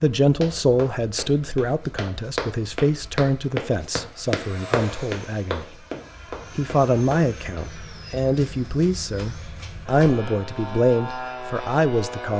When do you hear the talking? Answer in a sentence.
The talking can be heard from 0.0 to 5.8 s and from 6.5 to 12.3 s.